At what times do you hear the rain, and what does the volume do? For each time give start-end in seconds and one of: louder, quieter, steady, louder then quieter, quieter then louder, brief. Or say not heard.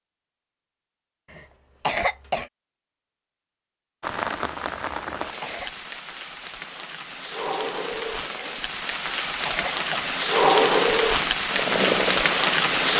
4.0-12.9 louder.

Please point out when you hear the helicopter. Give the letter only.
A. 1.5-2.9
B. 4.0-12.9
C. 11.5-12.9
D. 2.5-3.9
C.